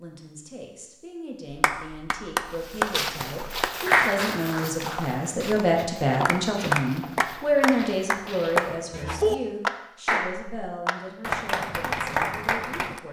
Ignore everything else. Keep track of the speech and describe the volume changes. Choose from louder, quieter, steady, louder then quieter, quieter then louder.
louder then quieter.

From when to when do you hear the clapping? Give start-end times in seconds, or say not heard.
1.5-13.0.